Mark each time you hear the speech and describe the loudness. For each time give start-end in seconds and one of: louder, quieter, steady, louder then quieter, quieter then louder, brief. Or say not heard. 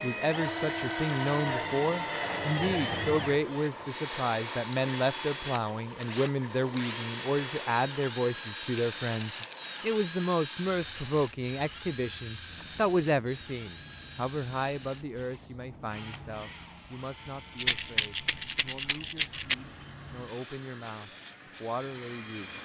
0.0-22.6 quieter.